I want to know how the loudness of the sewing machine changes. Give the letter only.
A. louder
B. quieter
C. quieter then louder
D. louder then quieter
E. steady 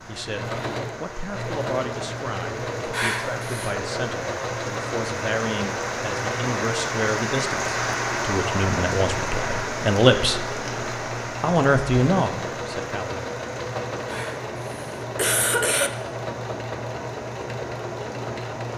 E.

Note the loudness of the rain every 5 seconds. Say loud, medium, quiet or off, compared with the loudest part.
medium, loud, medium, quiet.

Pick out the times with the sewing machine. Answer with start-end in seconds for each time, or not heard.
0.0-18.7.